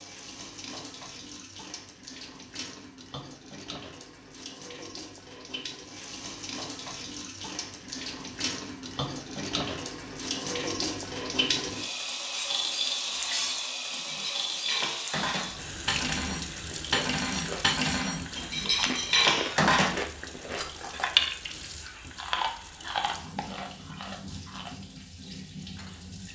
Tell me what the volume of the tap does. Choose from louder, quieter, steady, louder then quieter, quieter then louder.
louder then quieter.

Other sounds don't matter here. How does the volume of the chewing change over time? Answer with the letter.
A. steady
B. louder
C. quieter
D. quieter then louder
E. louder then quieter
E.